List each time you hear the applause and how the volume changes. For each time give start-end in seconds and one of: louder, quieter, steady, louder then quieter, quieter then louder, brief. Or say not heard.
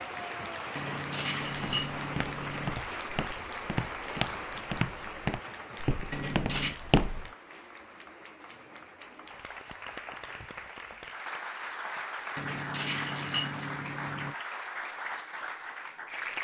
0.0-16.4 quieter then louder.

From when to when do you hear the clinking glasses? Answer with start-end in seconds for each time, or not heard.
0.8-2.8, 6.1-6.8, 12.3-14.3.